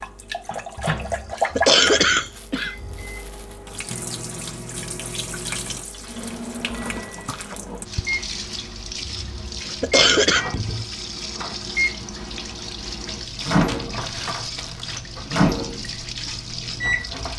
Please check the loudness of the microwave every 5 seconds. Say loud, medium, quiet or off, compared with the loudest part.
medium, medium, loud, loud.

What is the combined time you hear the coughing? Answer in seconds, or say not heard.
4 s.